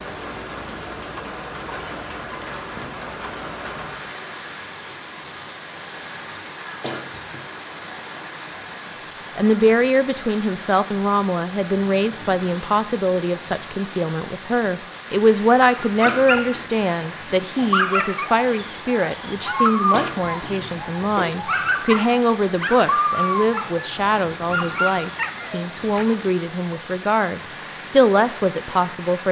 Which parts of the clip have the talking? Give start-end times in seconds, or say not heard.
9.3-29.2.